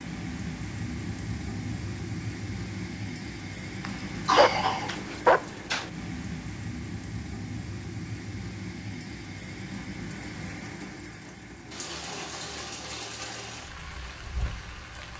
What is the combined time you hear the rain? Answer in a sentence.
You can hear the rain for 15 seconds altogether.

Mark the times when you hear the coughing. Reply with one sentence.
You can hear the coughing from 3.8 to 5.0 s.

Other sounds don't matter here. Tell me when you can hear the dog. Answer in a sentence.
The dog can be heard from 4.3 to 5.9 s.